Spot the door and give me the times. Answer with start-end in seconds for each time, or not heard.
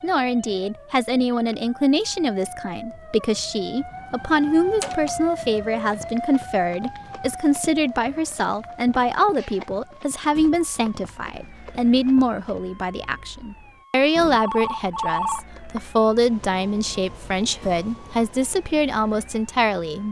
4.8-5.2.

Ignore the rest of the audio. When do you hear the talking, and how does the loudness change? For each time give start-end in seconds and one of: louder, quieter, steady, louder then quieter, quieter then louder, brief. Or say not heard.
0.0-20.0 steady.